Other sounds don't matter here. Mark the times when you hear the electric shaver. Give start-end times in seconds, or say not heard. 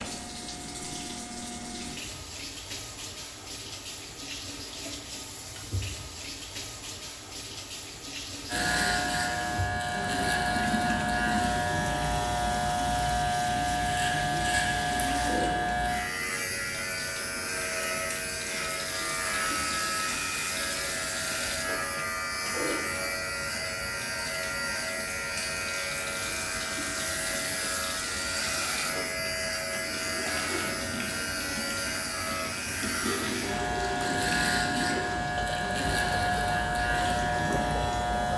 8.4-38.3.